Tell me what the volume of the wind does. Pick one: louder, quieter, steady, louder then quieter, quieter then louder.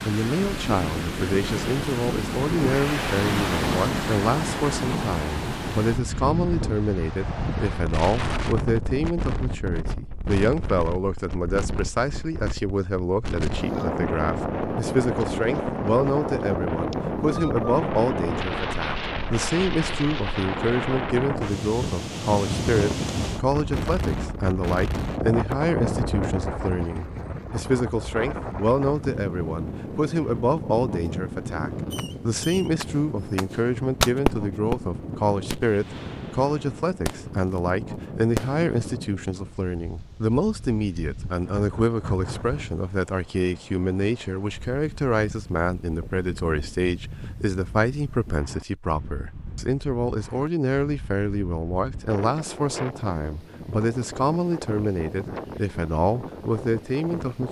quieter.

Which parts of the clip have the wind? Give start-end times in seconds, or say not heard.
0.0-57.4.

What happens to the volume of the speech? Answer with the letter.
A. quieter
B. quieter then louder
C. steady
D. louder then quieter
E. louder
C.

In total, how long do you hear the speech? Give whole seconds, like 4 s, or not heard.
57 s.